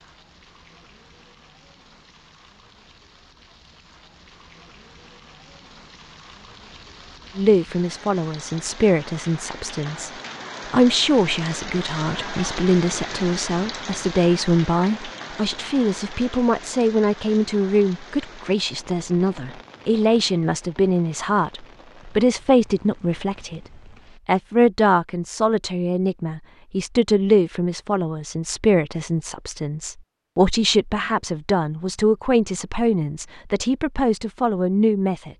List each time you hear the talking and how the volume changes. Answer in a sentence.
The talking can be heard briefly from 7.3 to 10.1 s; from 10.7 to 23.6 s, at a steady volume; and from 24.2 to 35.3 s, at a steady volume.